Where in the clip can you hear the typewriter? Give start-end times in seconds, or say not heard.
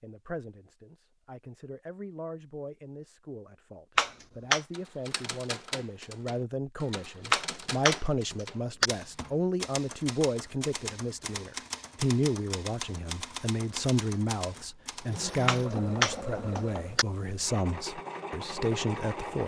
4.7-15.2.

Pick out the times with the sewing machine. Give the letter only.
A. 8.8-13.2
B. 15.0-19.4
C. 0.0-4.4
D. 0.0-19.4
B.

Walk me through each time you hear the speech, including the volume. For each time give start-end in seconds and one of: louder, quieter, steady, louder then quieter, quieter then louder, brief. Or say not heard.
0.0-19.4 louder.